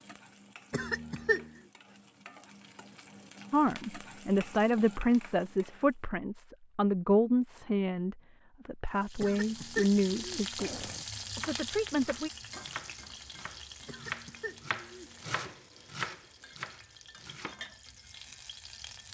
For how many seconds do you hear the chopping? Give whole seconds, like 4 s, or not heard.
6 s.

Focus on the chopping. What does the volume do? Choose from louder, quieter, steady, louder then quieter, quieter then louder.
louder then quieter.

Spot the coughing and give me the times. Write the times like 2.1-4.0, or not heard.
0.7-1.5, 9.2-11.1, 13.8-15.5.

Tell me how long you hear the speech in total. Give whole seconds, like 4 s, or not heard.
8 s.